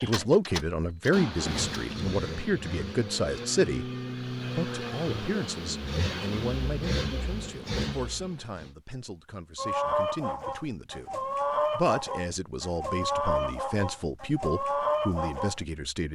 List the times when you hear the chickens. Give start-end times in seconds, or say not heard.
9.6-15.6.